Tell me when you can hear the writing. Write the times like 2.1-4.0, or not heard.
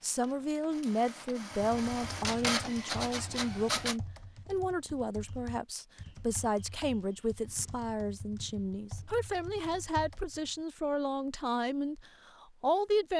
not heard.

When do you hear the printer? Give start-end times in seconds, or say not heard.
0.0-4.0.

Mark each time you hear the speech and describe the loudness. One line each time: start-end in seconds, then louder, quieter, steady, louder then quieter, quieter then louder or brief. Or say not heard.
0.0-13.1 steady.